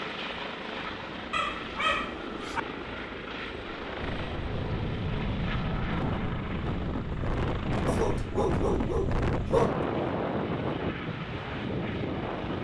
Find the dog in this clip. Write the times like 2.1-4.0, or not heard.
1.3-2.6, 7.8-9.8.